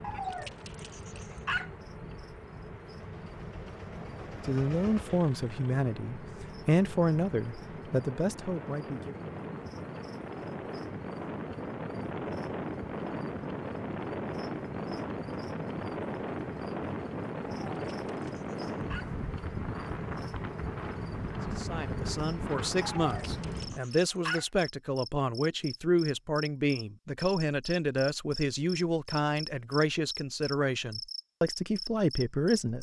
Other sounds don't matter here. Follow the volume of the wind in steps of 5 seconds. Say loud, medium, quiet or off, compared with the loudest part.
quiet, medium, loud, loud, loud, off, off.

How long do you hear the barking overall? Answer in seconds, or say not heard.
5 s.